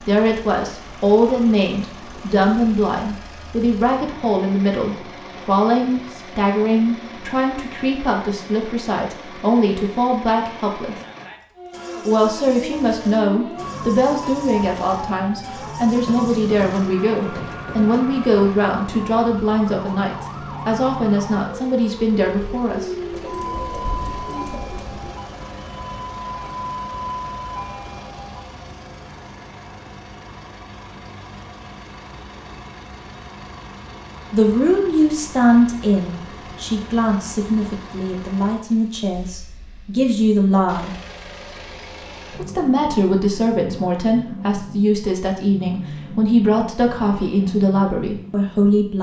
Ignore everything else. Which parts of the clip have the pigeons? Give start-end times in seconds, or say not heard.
23.1-25.1.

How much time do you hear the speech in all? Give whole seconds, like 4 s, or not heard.
35 s.